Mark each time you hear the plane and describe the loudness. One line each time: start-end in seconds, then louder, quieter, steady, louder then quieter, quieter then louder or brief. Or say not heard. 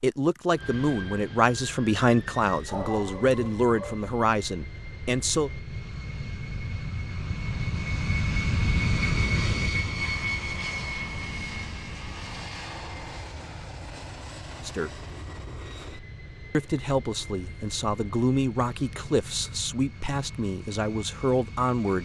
0.1-22.0 louder then quieter.